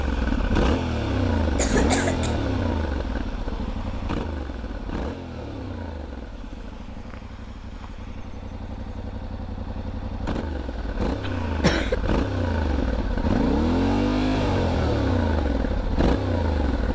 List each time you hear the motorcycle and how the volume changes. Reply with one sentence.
The motorcycle can be heard from 0.0 to 16.9 s, getting quieter then louder.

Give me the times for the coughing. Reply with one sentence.
You can hear the coughing from 1.4 to 2.4 s and from 11.2 to 11.9 s.